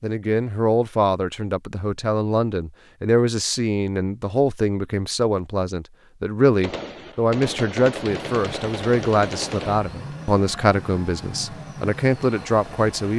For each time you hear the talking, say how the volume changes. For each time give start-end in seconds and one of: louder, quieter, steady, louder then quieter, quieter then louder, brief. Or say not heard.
0.0-13.1 steady.